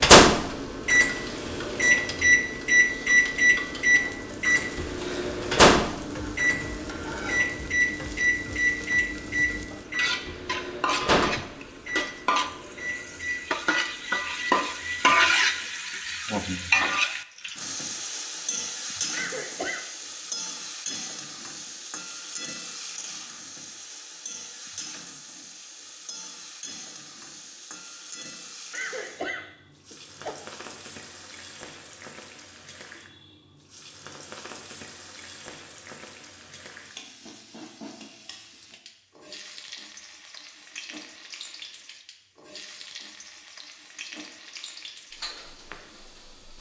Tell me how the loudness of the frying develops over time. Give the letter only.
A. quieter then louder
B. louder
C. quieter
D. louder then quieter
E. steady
D.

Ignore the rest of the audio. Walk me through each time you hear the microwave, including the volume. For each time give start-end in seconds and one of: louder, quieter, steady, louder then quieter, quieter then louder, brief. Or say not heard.
0.0-15.7 quieter.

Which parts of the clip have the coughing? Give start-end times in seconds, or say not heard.
19.1-19.9, 28.7-30.4.